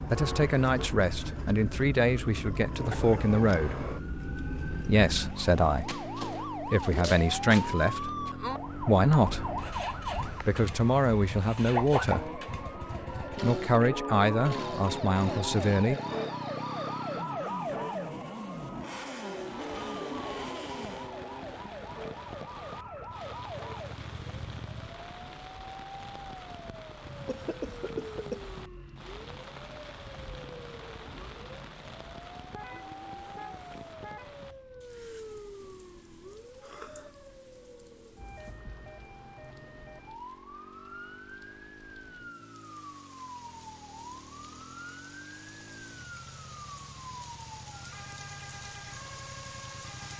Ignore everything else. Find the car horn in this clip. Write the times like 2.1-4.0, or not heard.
0.1-0.9, 32.5-34.4.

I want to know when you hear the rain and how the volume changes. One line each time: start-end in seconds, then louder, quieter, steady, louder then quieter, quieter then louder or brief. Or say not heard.
19.5-50.1 quieter then louder.